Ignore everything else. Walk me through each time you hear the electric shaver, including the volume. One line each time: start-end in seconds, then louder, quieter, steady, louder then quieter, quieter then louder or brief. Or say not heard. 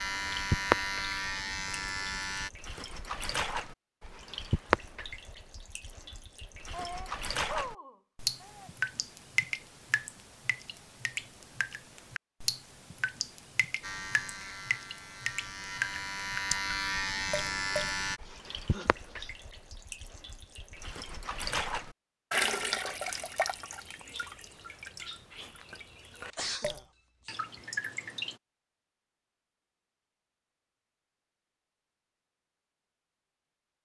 0.0-2.5 brief
13.8-18.2 louder.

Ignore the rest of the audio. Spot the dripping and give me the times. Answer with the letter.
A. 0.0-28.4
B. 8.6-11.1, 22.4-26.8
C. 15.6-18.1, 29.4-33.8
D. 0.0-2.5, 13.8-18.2
A.